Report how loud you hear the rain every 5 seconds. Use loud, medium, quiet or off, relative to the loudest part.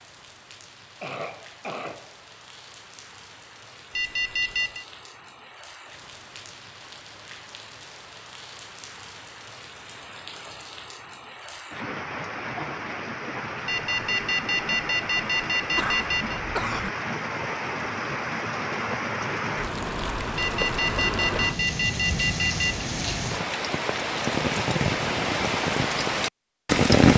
quiet, quiet, quiet, medium, medium, loud.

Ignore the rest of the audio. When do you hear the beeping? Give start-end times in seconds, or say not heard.
4.0-4.8, 13.7-16.4, 20.4-22.9.